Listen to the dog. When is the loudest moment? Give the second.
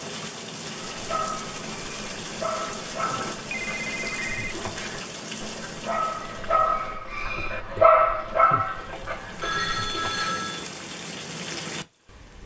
8 s.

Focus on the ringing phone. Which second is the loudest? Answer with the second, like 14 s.
10 s.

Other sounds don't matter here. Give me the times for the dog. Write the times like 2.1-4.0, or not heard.
0.9-10.3.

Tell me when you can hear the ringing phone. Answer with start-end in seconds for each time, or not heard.
3.0-4.5, 9.3-10.7.